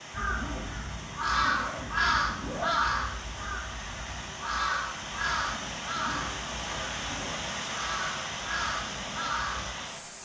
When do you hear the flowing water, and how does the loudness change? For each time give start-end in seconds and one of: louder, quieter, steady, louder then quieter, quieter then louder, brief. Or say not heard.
0.0-10.2 louder.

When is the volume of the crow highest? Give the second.
2 s.